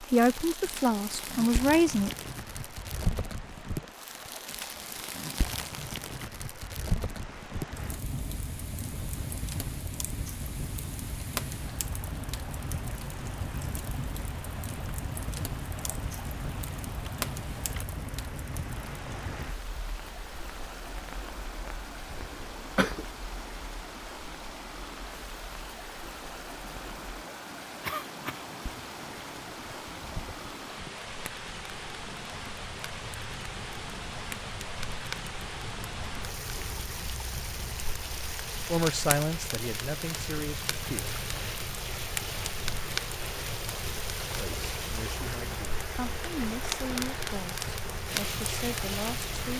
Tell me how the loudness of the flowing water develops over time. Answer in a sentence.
The volume of the flowing water goes up.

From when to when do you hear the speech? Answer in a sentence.
The speech can be heard from 0.0 to 2.1 s, from 38.6 to 41.2 s and from 44.4 to 49.5 s.